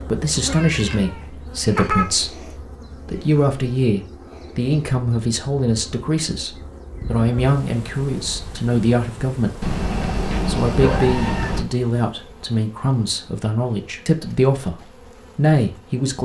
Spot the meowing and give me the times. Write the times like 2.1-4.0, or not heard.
0.5-2.0, 9.6-11.7.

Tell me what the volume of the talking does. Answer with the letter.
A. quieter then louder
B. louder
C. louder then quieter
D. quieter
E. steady
E.